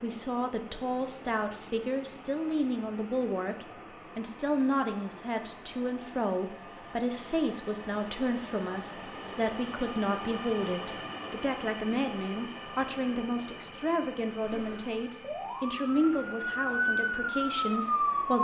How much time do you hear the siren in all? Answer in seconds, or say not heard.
4 s.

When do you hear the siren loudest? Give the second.
18 s.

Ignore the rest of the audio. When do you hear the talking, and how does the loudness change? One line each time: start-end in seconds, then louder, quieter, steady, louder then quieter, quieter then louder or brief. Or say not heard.
0.0-18.3 steady.